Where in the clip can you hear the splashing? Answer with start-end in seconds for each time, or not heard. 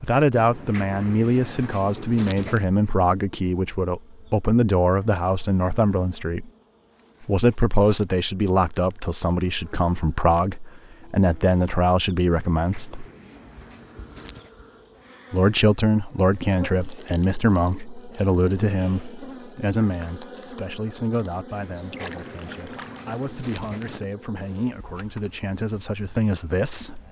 21.9-23.2.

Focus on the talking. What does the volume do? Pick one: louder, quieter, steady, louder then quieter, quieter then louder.
quieter.